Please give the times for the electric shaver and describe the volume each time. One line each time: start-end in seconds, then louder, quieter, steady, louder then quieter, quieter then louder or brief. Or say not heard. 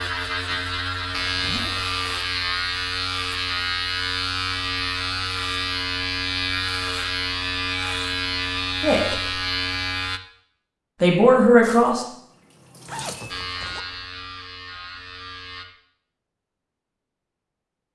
0.0-10.2 steady
13.3-15.7 brief.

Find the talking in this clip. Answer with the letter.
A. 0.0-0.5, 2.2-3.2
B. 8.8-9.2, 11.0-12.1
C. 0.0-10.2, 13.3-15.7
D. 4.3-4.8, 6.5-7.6
B.